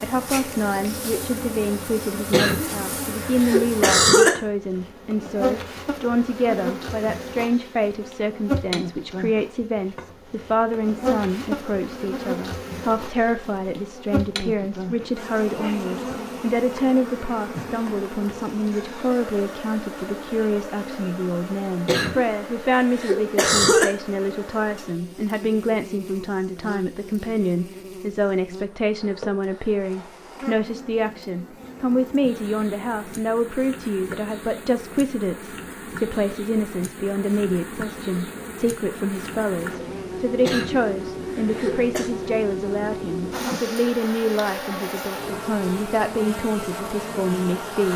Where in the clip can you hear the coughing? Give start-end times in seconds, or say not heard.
2.3-4.3, 21.9-23.9, 40.5-42.1.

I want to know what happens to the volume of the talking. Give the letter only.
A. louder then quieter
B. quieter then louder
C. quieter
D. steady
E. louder
D.